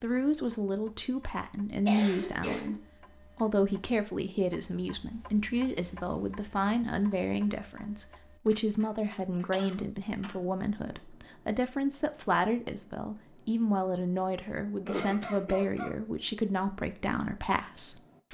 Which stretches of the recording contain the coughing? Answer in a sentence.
You can hear the coughing from 1.9 to 2.8 s, from 9.5 to 10.3 s and from 14.8 to 15.9 s.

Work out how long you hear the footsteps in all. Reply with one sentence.
You can't hear the footsteps here.